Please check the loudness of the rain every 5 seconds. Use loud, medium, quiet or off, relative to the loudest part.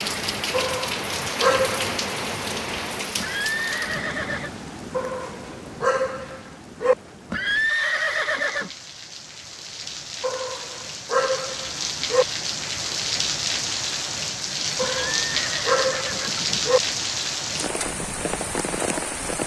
loud, quiet, loud, loud.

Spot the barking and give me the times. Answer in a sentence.
The barking can be heard from 0.5 to 1.9 s, from 4.9 to 7.0 s, from 10.2 to 12.2 s and from 14.8 to 16.8 s.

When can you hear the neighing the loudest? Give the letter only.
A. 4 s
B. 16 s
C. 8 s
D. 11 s
C.